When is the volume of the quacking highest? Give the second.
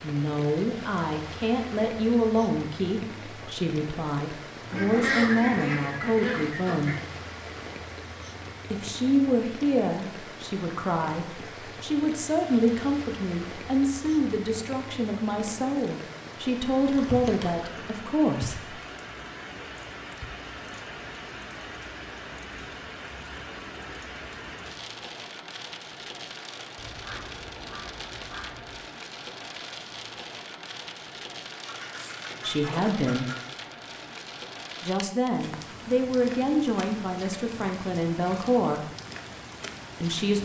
5 s.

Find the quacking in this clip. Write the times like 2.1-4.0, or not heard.
4.7-7.0, 16.9-18.6, 26.8-28.8, 31.6-33.5.